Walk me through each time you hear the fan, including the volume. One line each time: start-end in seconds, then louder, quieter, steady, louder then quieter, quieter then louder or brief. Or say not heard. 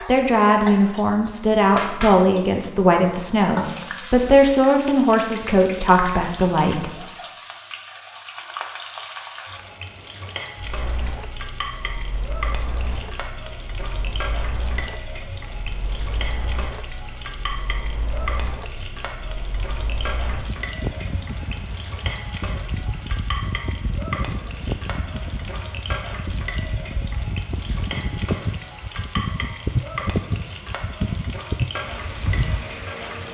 10.6-33.2 louder.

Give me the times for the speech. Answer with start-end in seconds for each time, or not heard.
0.1-7.0.